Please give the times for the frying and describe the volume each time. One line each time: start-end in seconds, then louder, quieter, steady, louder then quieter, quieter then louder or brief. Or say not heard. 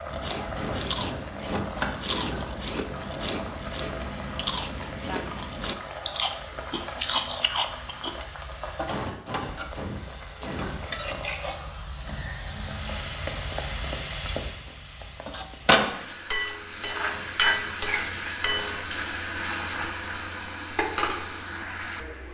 0.0-22.2 louder.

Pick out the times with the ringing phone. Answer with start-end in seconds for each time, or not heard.
not heard.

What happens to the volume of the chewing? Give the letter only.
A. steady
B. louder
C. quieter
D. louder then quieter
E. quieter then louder
A.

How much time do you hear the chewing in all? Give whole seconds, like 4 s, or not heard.
8 s.